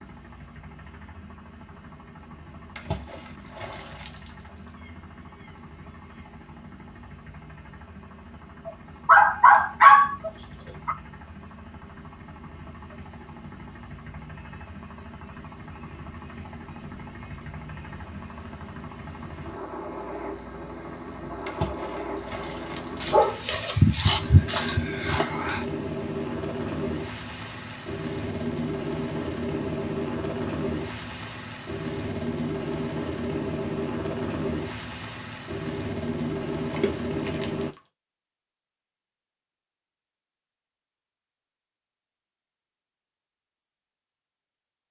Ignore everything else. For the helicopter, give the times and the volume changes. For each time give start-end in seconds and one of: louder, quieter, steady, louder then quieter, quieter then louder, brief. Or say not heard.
0.0-37.8 louder.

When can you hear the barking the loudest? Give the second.
10 s.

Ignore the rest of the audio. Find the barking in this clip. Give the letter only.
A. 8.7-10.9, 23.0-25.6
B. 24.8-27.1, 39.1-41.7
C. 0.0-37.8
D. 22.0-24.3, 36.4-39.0
A.